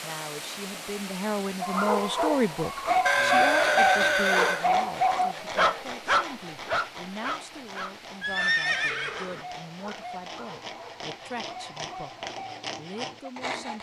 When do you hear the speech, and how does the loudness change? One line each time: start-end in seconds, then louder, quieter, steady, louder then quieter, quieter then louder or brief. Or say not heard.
0.0-13.7 quieter.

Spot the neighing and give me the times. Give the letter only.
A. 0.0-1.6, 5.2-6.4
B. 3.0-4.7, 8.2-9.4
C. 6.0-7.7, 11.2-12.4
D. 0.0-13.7
B.